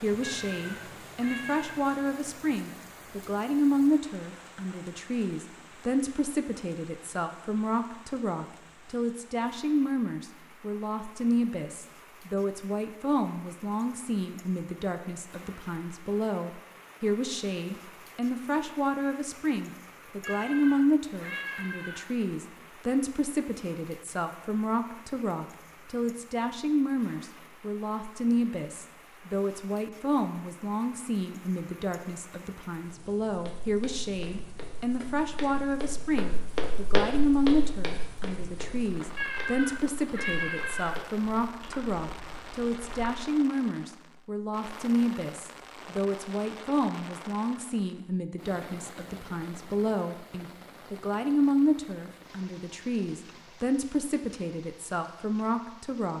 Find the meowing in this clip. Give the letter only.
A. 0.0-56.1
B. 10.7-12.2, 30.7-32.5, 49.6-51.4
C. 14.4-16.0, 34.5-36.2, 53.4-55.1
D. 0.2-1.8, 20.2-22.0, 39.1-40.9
D.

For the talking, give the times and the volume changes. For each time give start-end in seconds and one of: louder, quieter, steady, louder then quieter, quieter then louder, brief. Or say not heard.
0.0-56.1 steady.